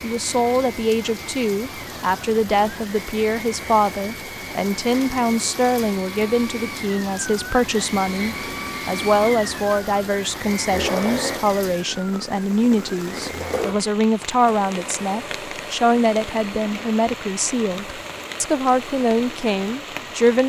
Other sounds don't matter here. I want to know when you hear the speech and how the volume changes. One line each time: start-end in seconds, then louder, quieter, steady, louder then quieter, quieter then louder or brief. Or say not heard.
0.0-20.4 steady.